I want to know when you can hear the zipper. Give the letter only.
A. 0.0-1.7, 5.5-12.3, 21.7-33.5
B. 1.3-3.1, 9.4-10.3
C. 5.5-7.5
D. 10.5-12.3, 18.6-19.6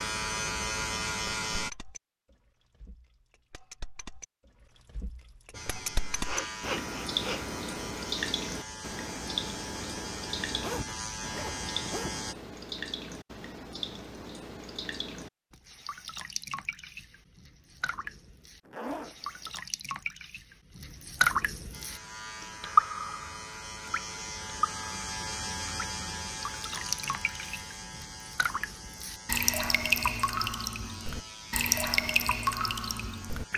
D.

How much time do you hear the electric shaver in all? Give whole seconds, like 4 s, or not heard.
20 s.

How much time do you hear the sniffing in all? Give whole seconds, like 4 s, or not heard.
2 s.